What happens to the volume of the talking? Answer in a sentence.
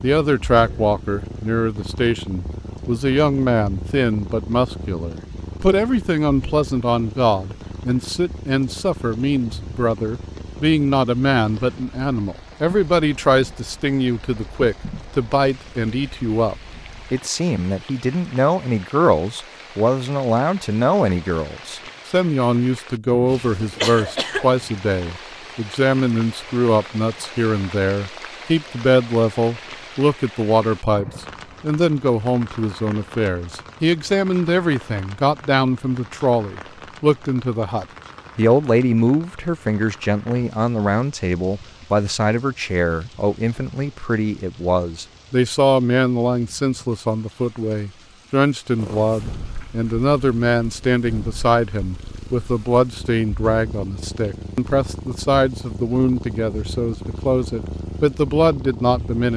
The loudness of the talking stays about the same.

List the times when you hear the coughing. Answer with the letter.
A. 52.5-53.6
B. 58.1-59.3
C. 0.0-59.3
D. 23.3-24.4
D.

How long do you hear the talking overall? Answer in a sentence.
You can hear the talking for 59 seconds altogether.